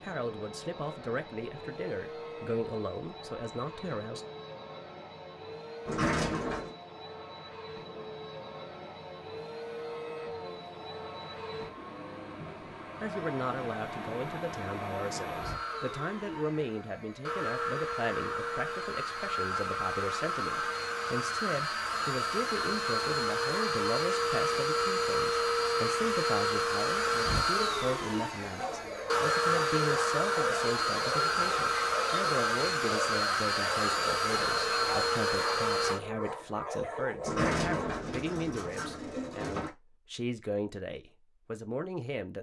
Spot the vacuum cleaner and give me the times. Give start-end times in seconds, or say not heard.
0.0-36.0.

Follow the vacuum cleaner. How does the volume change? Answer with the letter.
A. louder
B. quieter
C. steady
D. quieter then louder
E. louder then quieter
A.